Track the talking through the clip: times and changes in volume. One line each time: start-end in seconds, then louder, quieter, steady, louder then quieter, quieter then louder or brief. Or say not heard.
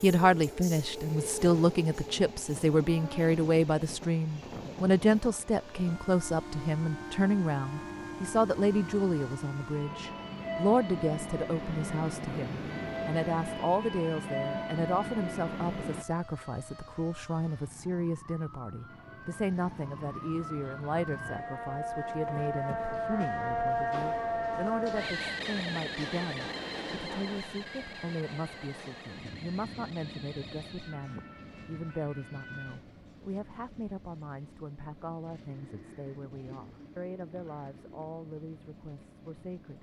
0.0-39.7 quieter.